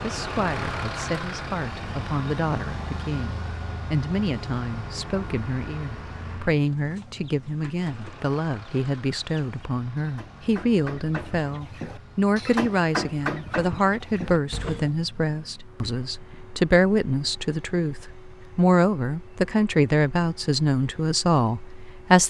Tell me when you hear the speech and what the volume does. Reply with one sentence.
You can hear the speech from 0.0 to 22.2 s, getting louder.